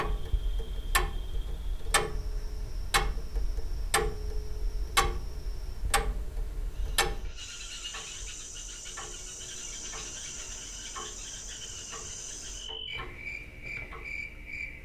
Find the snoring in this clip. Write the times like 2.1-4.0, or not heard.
not heard.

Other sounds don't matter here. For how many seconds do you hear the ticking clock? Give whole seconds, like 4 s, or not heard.
15 s.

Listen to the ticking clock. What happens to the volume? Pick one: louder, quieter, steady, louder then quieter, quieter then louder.
quieter.